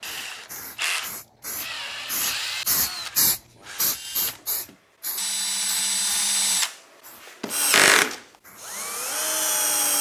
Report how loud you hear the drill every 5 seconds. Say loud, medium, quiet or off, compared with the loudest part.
medium, loud.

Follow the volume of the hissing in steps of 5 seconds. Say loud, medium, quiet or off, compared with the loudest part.
loud, quiet.